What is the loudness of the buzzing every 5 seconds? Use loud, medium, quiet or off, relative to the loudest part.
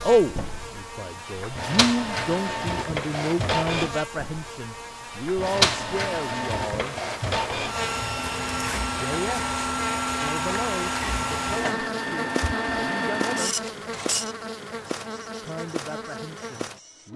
medium, loud, loud, loud.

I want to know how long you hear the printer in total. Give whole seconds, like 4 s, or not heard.
17 s.